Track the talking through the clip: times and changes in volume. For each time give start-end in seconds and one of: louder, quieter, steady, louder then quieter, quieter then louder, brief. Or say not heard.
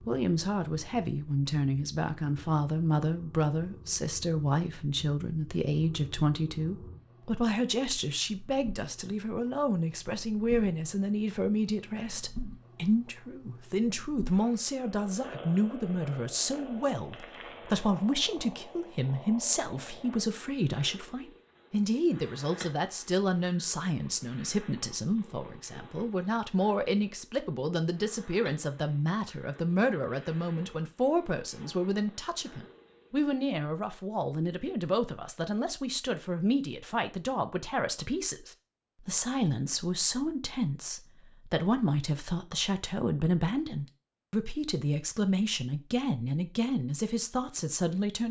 0.1-48.2 steady.